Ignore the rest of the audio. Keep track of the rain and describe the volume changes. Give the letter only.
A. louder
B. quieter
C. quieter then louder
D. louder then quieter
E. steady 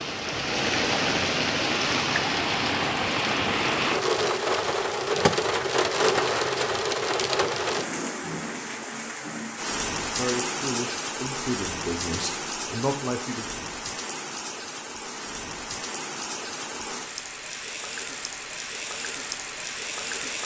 B.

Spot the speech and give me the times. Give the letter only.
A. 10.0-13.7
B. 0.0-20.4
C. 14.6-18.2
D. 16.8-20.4
A.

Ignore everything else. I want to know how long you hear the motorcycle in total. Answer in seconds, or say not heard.
not heard.